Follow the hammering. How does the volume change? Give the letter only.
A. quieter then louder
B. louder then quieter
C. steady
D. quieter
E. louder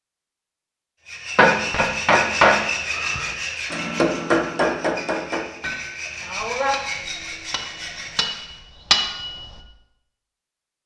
A.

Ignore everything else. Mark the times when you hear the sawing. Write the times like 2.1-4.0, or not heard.
1.1-8.6.